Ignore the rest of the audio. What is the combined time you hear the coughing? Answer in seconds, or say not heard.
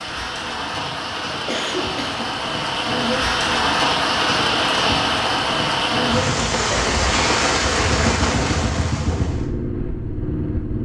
2 s.